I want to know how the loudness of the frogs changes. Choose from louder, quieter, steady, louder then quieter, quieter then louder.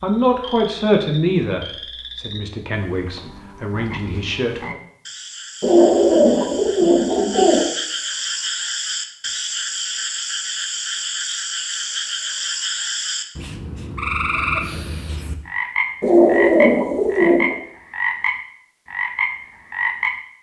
louder.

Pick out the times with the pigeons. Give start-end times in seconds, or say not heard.
5.6-7.7, 16.0-17.6.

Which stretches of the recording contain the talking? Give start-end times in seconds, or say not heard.
0.0-4.6.